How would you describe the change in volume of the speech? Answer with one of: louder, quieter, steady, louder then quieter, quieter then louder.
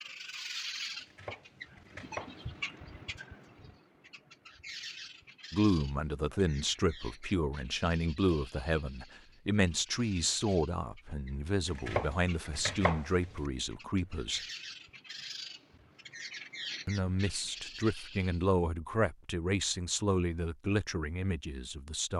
steady.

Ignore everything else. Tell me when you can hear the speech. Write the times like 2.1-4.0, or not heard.
5.5-14.4, 16.9-22.1.